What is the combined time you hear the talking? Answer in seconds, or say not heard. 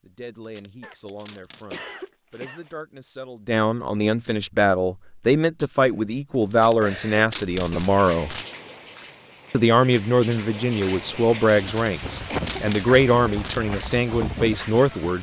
14 s.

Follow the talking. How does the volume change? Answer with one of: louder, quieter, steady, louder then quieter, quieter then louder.
louder.